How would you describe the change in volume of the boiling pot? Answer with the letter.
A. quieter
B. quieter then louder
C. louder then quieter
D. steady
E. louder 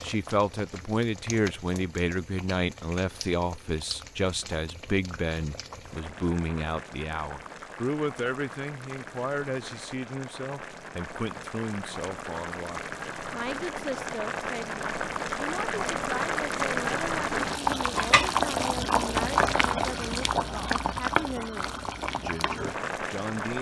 E.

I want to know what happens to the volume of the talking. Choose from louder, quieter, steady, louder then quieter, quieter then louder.
quieter.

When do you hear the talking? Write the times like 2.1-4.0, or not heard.
0.0-23.5.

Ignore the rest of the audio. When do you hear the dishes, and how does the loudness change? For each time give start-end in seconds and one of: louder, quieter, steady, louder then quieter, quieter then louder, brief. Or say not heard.
not heard.